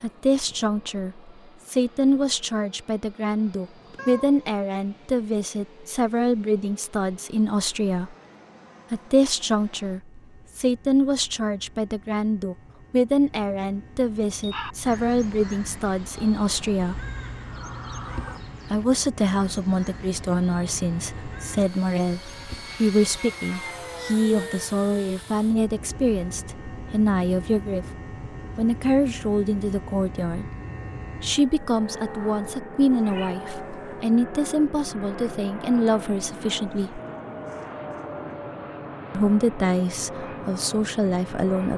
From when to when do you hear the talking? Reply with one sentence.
You can hear the talking from 0.0 to 8.2 s, from 8.9 to 17.0 s, from 18.7 to 27.9 s, from 28.6 to 30.4 s, from 31.1 to 37.0 s and from 39.1 to 41.7 s.